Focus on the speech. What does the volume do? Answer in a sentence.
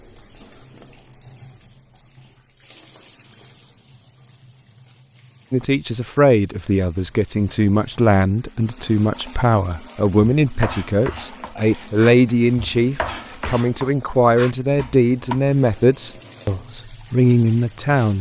The loudness of the speech stays about the same.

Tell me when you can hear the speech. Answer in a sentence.
The speech can be heard from 5.5 to 18.1 s.